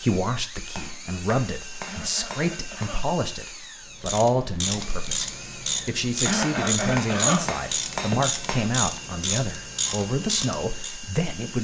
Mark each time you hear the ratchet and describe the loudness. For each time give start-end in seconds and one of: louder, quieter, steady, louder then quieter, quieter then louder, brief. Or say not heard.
4.0-11.0 steady.